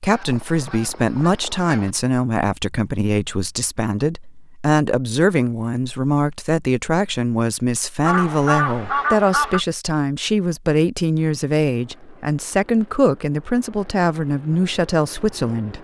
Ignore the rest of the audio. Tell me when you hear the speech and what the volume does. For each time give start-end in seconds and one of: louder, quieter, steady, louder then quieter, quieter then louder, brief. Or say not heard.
0.0-15.7 steady.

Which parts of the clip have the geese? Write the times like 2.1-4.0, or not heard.
0.1-1.9, 8.0-9.6.